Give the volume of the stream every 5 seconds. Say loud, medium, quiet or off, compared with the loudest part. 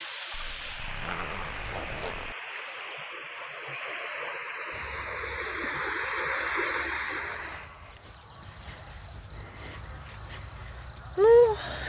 medium, loud, off.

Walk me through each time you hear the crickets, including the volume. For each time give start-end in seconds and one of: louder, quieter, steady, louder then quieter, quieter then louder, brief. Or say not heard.
4.7-11.8 louder.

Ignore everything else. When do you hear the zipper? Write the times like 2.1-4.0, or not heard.
0.3-2.4.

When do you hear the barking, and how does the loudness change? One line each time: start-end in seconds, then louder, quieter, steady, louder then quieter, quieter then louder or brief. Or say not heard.
not heard.